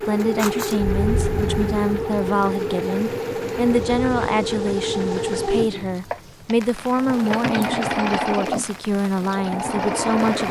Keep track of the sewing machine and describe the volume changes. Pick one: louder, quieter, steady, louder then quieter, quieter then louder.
steady.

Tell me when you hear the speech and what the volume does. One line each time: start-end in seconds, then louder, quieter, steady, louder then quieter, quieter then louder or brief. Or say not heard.
0.1-10.4 steady.